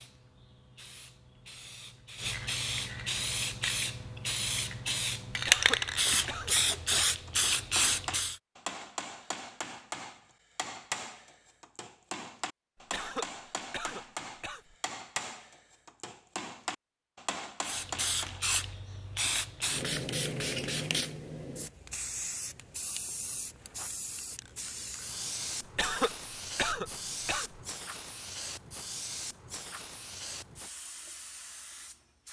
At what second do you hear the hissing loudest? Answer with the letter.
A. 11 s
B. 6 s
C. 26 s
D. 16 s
B.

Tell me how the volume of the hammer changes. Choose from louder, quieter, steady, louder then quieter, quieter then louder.
steady.